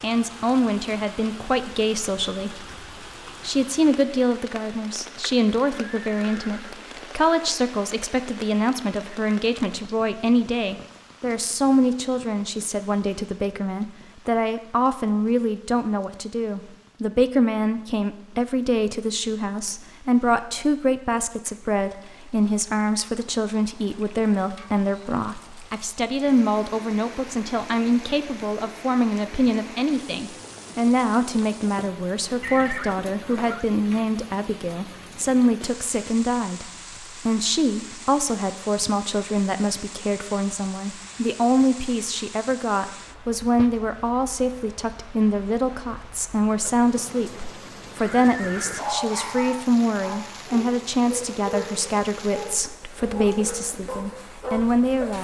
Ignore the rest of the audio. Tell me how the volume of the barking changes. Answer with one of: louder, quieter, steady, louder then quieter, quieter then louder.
steady.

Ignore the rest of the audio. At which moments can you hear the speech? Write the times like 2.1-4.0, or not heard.
0.0-2.6, 3.4-55.1.